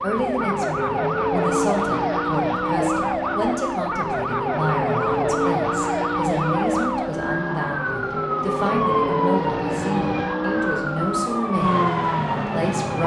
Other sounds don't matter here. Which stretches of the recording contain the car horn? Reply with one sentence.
You can't hear the car horn here.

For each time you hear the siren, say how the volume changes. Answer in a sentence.
The siren can be heard from 0.0 to 13.0 s, at a steady volume.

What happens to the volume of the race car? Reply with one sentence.
The volume of the race car stays about the same.